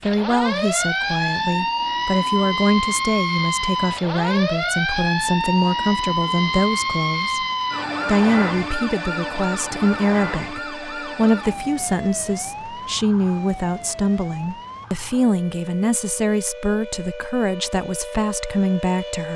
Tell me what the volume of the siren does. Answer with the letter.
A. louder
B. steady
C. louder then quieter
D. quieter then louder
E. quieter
E.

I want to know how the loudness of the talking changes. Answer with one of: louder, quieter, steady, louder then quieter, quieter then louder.
steady.